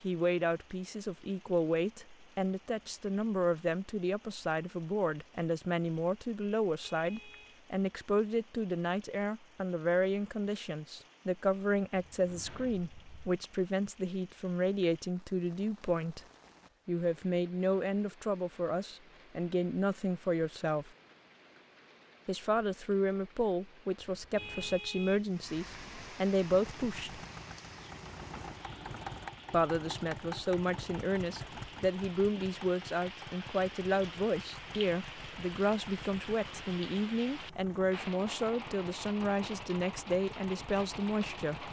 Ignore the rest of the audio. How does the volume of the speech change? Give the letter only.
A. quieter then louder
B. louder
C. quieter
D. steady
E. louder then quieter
D.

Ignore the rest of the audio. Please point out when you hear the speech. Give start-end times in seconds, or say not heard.
0.0-16.2, 16.9-20.9, 22.2-27.2, 29.5-41.6.